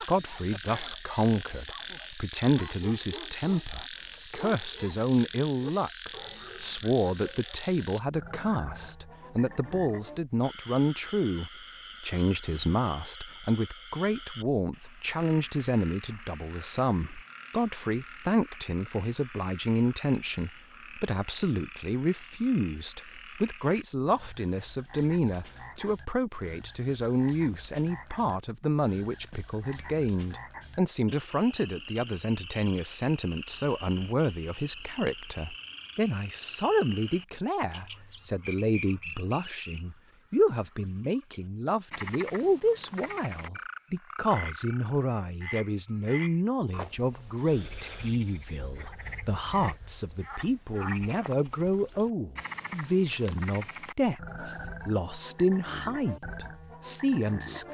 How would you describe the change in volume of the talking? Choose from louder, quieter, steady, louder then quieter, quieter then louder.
steady.